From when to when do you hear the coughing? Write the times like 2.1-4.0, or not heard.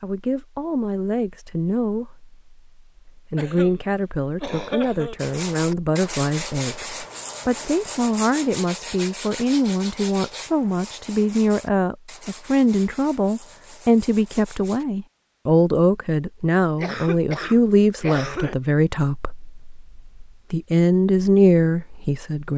3.4-5.3, 16.8-18.6.